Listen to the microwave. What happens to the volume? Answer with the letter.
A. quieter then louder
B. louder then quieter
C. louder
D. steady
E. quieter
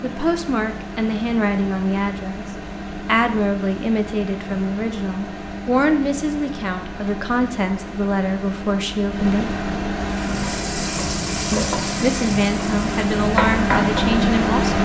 C.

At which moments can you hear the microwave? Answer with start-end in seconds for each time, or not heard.
0.0-14.7.